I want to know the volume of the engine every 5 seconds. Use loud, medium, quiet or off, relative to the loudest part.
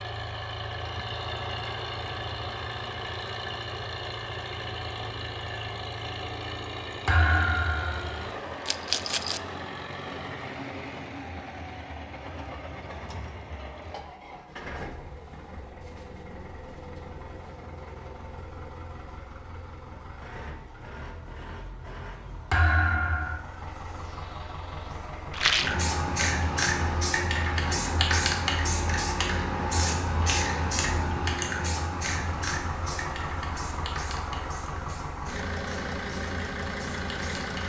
loud, loud, medium, medium, medium, medium, loud, loud.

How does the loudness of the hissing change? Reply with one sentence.
The volume of the hissing goes down.